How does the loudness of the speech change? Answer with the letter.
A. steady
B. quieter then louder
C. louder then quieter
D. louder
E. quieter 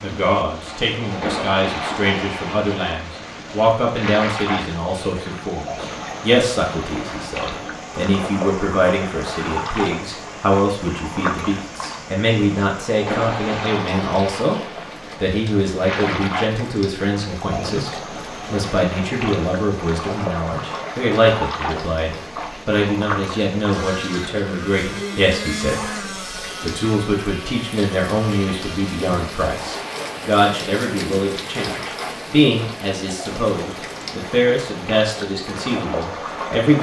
A.